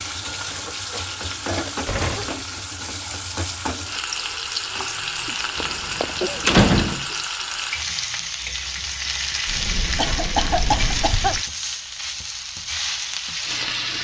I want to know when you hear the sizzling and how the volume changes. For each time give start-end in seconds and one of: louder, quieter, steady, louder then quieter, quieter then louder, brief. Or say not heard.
0.0-13.9 steady.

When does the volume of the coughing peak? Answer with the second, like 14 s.
11 s.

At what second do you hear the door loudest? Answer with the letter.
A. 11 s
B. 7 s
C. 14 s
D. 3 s
B.